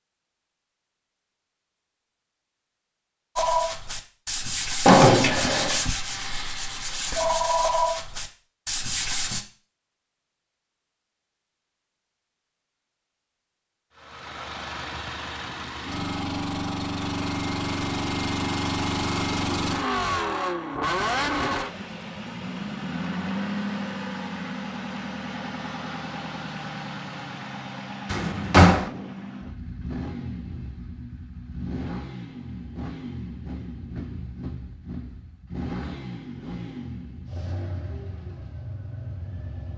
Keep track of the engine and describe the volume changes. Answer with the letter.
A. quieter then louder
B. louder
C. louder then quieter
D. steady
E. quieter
E.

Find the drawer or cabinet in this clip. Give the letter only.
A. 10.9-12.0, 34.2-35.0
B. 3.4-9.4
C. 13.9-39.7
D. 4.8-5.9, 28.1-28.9
D.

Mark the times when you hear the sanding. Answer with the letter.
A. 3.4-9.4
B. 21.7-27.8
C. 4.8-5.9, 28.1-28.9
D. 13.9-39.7
A.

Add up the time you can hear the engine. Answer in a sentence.
The engine can be heard for 26 seconds in total.